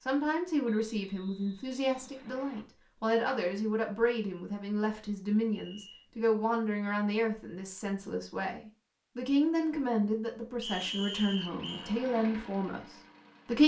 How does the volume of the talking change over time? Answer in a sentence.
The volume of the talking stays about the same.